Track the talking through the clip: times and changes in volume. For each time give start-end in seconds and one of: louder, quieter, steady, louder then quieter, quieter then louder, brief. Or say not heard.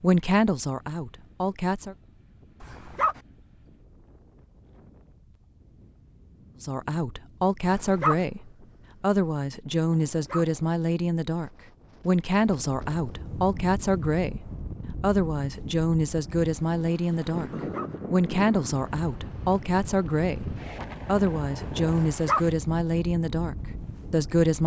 0.0-1.9 brief
6.6-17.5 steady
18.1-24.6 steady.